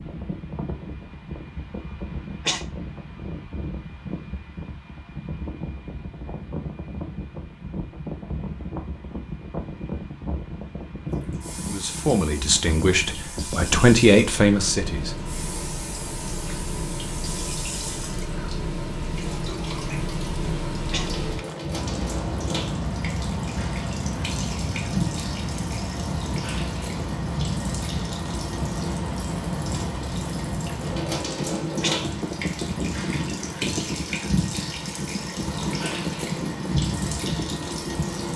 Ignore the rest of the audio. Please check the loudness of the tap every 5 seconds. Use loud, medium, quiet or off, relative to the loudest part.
off, off, medium, medium, loud, loud, loud, loud.